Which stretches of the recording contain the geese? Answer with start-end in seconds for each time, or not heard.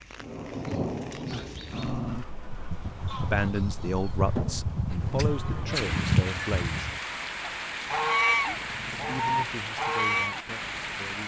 2.5-10.4.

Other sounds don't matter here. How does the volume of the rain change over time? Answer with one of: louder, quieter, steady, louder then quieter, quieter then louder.
quieter then louder.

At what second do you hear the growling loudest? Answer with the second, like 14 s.
2 s.